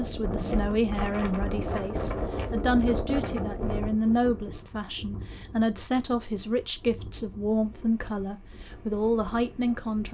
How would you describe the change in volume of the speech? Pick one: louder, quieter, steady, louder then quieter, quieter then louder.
steady.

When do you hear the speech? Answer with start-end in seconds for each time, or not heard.
0.0-10.0.